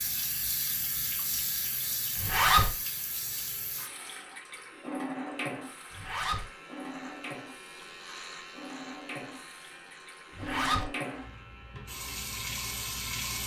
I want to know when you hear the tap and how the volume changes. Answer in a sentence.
The tap can be heard from 0.0 to 13.4 s, getting quieter then louder.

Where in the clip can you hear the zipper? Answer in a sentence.
You can hear the zipper from 2.1 to 2.7 s, from 5.9 to 6.5 s and from 10.3 to 10.8 s.